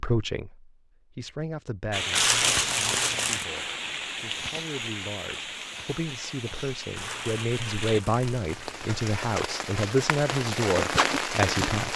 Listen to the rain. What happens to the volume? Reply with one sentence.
The loudness of the rain goes down, then up.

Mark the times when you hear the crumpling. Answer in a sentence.
The crumpling can be heard from 2.1 to 3.5 s and from 7.0 to 8.9 s.